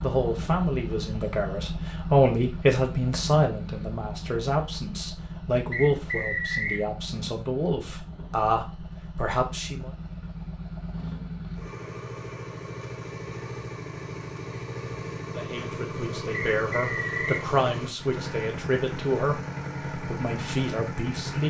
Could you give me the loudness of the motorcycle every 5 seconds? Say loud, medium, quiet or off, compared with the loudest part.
loud, medium, loud, loud, loud.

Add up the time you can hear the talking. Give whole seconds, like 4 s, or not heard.
16 s.